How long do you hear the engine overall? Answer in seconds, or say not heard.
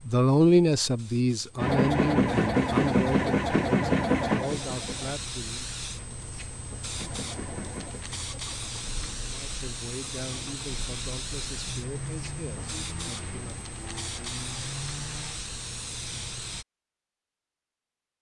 12 s.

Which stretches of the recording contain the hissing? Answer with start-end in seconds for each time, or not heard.
0.0-16.6.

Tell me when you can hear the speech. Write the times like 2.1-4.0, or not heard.
0.1-5.7, 9.3-13.7.